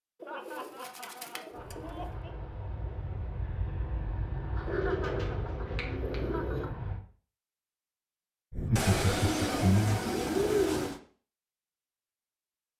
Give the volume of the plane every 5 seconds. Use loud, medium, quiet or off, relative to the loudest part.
loud, loud, off.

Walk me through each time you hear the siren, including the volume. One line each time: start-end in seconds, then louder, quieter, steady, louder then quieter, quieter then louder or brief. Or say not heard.
not heard.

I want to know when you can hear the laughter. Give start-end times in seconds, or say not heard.
0.2-2.4, 4.5-6.7, 8.5-10.1.